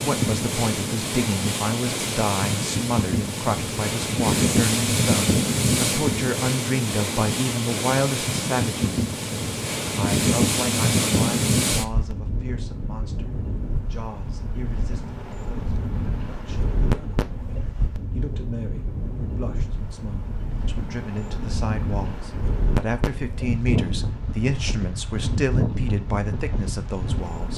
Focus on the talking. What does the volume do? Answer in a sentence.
The loudness of the talking goes down, then up.